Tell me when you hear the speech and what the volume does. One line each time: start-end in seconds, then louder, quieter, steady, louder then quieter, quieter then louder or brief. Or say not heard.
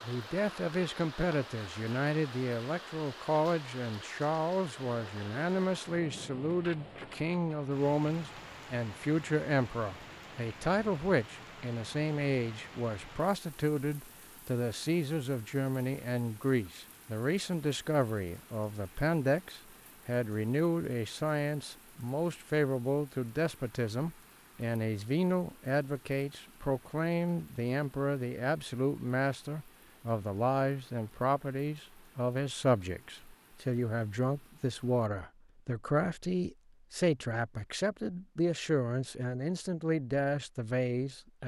0.0-41.4 steady.